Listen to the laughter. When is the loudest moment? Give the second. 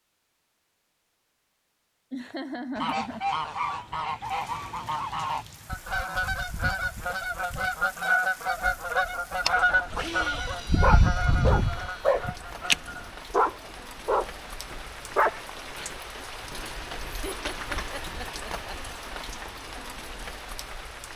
3 s.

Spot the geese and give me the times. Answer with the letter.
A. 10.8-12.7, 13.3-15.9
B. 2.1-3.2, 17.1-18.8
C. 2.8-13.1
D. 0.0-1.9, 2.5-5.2
C.